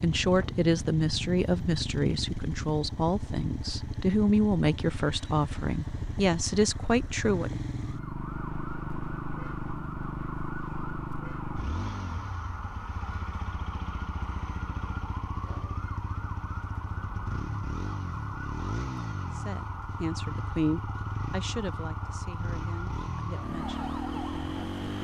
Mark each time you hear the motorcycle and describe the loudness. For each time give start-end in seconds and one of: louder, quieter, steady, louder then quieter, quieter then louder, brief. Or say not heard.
0.0-24.9 steady.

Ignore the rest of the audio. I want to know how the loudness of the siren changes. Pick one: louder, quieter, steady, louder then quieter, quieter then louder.
steady.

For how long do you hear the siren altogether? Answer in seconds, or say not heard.
17 s.